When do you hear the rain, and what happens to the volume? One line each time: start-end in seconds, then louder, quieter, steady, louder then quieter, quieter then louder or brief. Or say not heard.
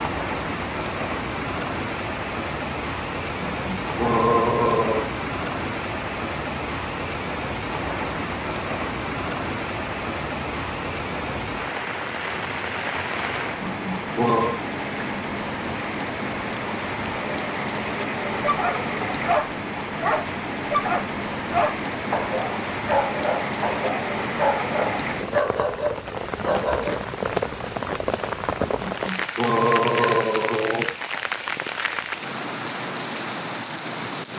0.0-34.3 steady.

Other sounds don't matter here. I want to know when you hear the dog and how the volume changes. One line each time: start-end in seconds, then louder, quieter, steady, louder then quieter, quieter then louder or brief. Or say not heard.
18.4-27.1 steady.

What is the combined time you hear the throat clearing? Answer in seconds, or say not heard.
5 s.